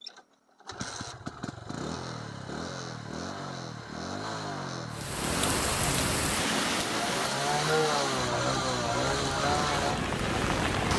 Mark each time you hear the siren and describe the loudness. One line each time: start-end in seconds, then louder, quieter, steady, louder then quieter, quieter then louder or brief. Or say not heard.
not heard.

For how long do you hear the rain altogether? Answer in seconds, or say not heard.
6 s.